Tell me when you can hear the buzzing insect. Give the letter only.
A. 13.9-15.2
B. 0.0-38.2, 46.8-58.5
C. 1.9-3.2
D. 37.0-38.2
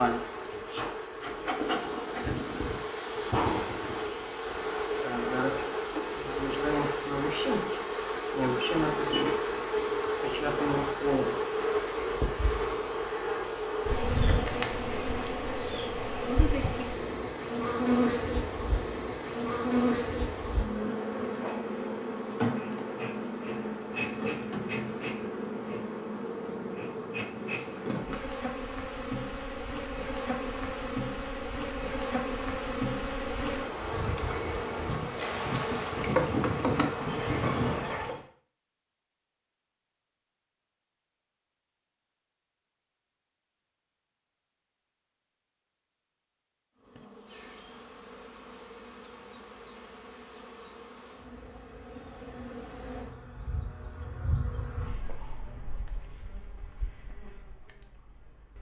B.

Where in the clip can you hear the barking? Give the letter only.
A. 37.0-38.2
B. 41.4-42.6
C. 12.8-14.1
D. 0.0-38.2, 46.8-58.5
A.